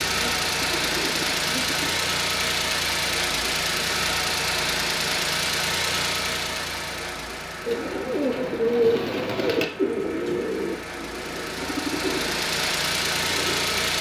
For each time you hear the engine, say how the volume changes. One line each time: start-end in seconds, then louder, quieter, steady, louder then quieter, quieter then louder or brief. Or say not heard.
0.0-13.9 quieter then louder.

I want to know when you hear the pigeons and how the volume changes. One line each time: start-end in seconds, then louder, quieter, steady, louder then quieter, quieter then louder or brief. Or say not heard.
0.0-2.0 brief
7.7-13.8 quieter.